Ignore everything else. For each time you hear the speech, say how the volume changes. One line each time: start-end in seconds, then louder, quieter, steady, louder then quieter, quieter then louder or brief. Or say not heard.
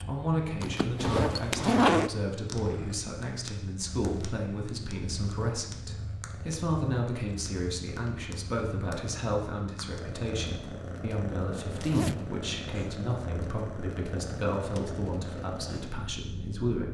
0.1-16.9 steady.